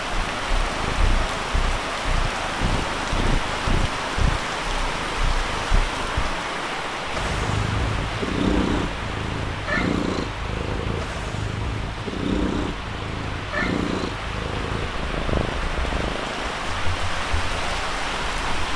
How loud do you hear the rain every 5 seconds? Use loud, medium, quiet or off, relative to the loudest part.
loud, loud, medium, loud.